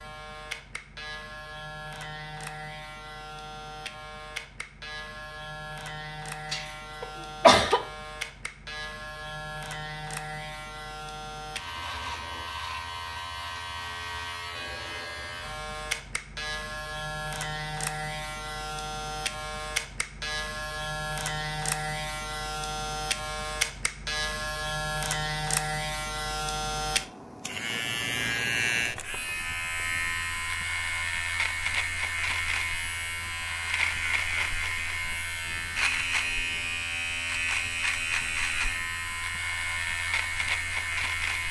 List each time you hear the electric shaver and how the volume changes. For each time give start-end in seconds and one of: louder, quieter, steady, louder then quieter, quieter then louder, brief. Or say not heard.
0.0-41.4 louder.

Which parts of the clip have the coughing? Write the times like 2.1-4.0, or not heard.
6.5-7.8.